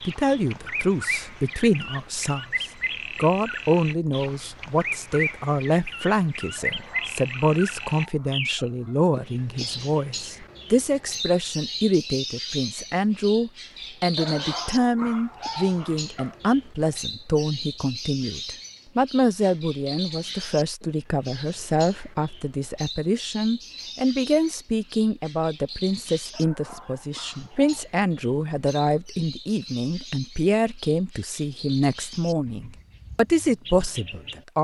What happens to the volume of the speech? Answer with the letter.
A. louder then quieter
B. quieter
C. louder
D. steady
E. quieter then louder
D.